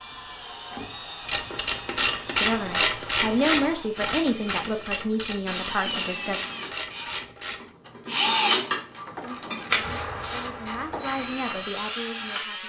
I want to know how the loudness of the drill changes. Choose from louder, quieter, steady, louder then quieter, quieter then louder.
louder then quieter.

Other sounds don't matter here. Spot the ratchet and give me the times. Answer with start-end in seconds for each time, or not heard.
1.2-11.7.